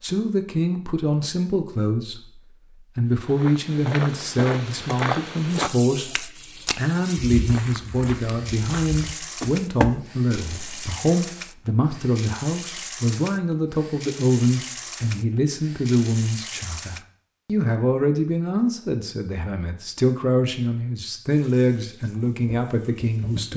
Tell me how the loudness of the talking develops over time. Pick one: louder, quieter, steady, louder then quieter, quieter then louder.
steady.